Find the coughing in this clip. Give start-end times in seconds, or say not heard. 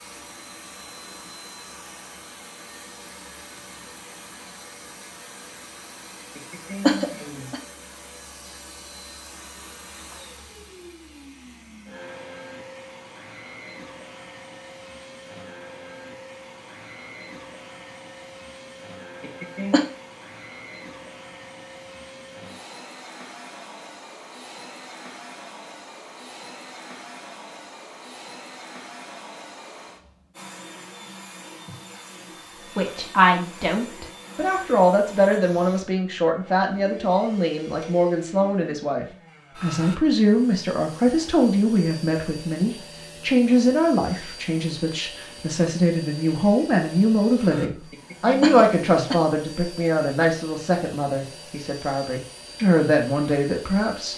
6.3-7.6, 19.2-19.9, 47.9-49.1.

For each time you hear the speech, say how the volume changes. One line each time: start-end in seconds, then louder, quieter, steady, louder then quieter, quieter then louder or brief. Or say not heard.
32.8-54.1 steady.